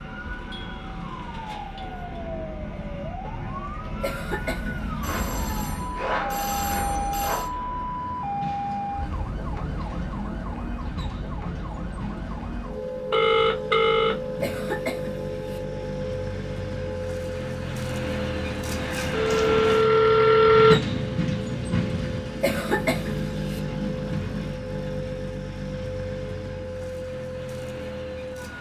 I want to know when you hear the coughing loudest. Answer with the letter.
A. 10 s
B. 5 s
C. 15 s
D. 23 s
D.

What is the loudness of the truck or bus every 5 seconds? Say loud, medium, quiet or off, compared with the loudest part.
quiet, quiet, medium, loud, loud, medium.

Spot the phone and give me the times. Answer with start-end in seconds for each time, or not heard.
5.0-7.5, 13.1-14.2, 19.1-20.8.